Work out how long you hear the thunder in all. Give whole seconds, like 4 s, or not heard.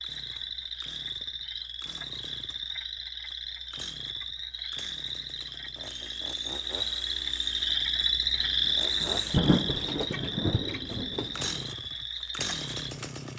3 s.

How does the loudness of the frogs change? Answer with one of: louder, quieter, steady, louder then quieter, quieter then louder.
louder then quieter.